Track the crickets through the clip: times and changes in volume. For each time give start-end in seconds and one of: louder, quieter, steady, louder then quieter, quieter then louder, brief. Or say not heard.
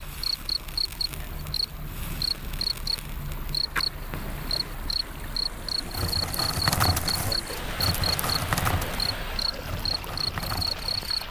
0.0-11.2 steady.